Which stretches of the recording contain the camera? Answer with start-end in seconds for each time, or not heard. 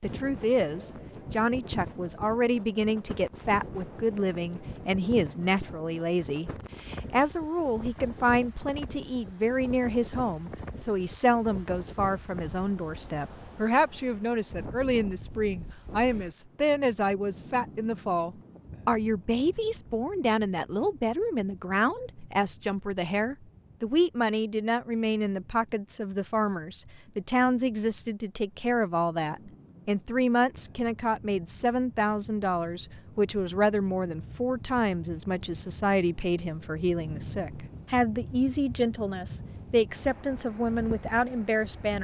not heard.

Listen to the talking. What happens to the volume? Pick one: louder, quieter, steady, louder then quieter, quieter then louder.
steady.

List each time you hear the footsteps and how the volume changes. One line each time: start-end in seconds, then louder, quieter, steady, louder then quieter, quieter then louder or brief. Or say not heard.
not heard.